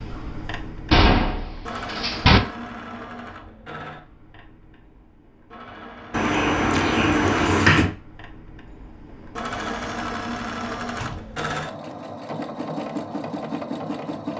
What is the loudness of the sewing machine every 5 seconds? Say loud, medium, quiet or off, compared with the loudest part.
medium, medium, loud.